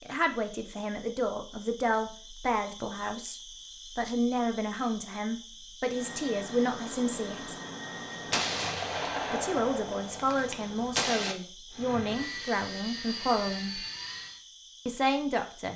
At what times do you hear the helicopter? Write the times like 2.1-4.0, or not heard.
5.8-9.1, 11.7-14.4.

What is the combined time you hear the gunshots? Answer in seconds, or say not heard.
3 s.